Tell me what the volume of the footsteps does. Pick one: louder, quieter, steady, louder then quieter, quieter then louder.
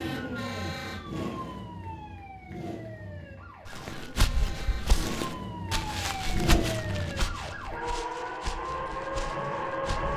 quieter.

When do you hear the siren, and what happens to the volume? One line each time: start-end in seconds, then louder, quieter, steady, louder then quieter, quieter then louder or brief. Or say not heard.
0.0-10.1 quieter then louder.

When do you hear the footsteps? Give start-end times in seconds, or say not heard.
3.6-10.1.